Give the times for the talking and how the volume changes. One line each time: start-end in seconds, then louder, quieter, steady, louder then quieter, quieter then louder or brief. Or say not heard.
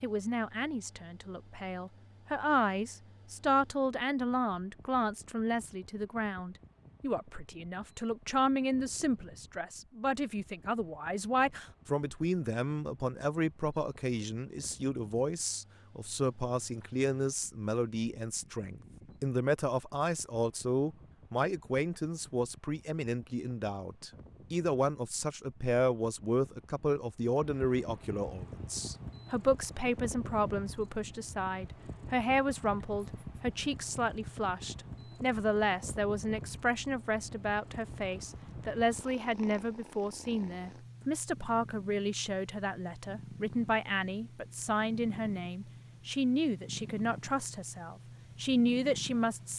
0.0-49.5 steady.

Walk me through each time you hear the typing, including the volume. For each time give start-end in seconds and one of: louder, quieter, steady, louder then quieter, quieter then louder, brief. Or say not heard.
not heard.